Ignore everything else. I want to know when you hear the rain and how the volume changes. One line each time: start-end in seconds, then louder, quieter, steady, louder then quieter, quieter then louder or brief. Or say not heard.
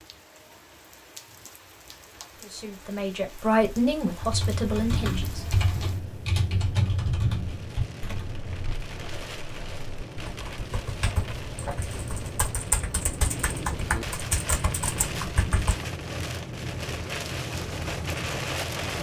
0.0-18.9 louder.